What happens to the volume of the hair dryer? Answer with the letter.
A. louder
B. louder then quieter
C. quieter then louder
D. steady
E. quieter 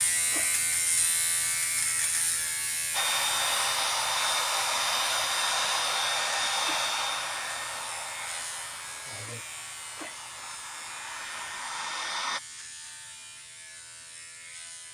C.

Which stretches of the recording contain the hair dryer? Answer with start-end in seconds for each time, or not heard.
2.9-12.4.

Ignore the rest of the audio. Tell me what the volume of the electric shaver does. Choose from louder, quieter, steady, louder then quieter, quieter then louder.
quieter.